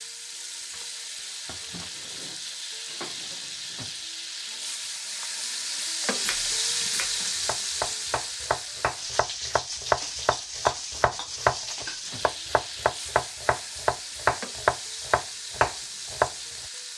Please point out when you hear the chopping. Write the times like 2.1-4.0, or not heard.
6.2-16.3.